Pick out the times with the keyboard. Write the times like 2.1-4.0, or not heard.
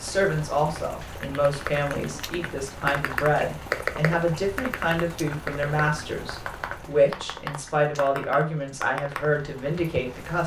1.1-10.0.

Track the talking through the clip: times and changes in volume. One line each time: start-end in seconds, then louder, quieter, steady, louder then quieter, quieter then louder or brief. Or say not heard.
0.0-10.4 steady.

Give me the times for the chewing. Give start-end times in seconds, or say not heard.
not heard.